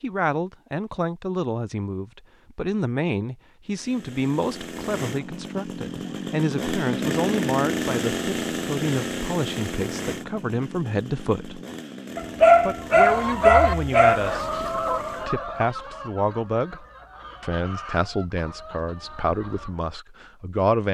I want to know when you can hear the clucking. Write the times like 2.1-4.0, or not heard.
12.9-19.9.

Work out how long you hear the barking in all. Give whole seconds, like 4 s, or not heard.
2 s.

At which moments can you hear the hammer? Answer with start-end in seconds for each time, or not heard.
not heard.